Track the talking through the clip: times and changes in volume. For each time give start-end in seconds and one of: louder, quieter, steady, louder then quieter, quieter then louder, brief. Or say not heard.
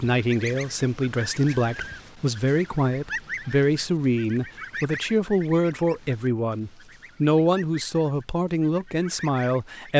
0.0-9.9 steady.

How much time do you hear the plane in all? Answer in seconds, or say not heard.
not heard.